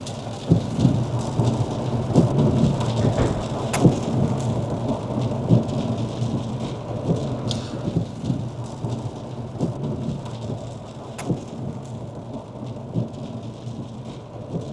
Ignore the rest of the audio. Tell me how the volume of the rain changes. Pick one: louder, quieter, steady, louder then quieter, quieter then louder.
quieter.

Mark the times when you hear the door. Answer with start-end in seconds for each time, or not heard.
3.0-3.5.